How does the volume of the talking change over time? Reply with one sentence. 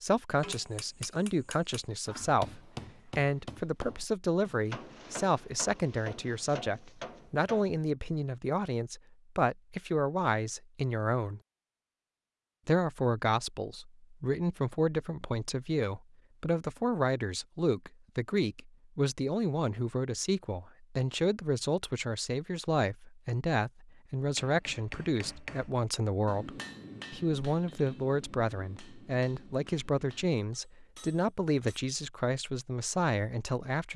The loudness of the talking stays about the same.